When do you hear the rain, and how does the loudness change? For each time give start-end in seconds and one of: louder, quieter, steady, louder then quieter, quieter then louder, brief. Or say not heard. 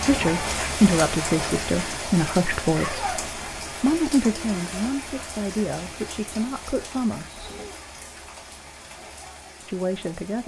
0.0-10.4 quieter.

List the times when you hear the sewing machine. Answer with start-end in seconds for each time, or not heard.
not heard.